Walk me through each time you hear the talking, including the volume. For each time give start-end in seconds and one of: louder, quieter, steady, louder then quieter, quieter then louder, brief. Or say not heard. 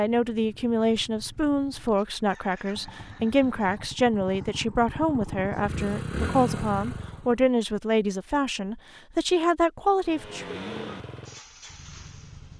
0.0-10.6 steady.